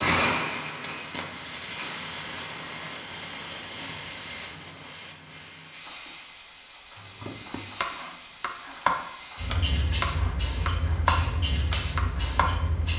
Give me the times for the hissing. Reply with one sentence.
The hissing can be heard from 0.0 to 12.9 s.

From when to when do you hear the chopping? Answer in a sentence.
The chopping can be heard from 7.0 to 12.6 s.